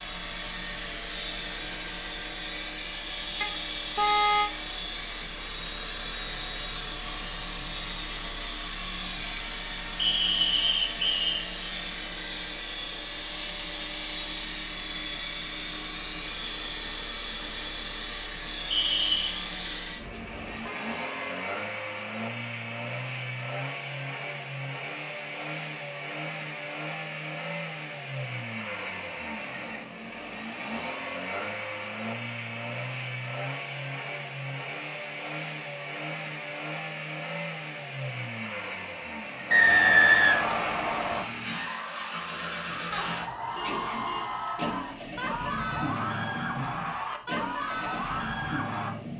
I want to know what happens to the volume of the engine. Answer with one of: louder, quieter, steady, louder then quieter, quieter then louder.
steady.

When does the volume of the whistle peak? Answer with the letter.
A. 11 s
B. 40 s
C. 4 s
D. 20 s
B.